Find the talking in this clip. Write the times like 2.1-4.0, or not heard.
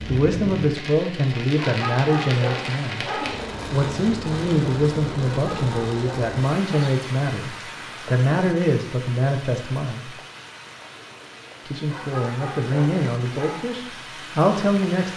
0.0-10.1, 11.7-15.1.